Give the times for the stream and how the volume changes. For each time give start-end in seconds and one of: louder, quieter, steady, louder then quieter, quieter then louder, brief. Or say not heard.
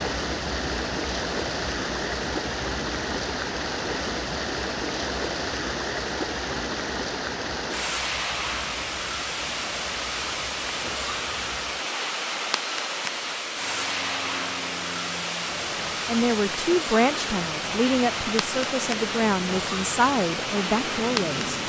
0.0-21.6 steady.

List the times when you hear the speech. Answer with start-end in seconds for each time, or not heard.
16.1-21.6.